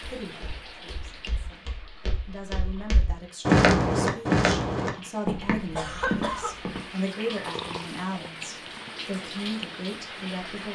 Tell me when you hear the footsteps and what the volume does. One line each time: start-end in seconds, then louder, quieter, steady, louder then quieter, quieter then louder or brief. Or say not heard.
0.2-6.9 louder then quieter.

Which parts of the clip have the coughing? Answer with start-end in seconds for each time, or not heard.
5.8-6.5.